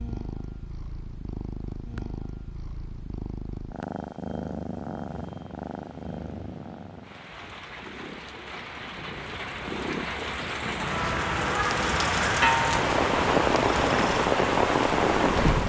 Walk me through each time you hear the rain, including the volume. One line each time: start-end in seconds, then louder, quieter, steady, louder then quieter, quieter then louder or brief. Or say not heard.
5.0-15.6 louder.